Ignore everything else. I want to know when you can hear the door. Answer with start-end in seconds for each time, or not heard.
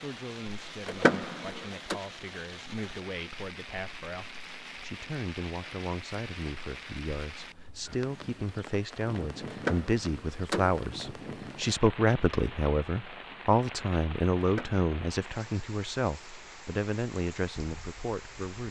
0.8-1.9, 9.5-10.8, 14.4-14.8.